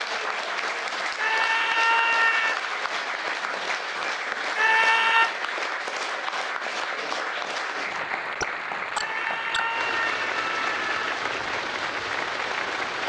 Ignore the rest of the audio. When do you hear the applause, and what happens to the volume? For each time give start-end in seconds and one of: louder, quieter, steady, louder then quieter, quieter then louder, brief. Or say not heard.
0.0-13.0 steady.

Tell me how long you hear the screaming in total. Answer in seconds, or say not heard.
4 s.